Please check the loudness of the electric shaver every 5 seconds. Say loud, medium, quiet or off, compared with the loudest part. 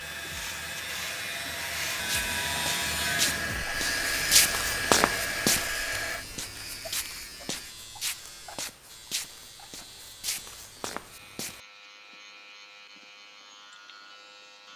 loud, medium, quiet.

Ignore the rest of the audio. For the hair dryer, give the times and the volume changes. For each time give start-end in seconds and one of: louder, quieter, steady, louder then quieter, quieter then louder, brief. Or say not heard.
0.0-6.2 louder.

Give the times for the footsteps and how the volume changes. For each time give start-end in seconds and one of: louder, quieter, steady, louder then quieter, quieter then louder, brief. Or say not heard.
1.9-11.6 louder then quieter.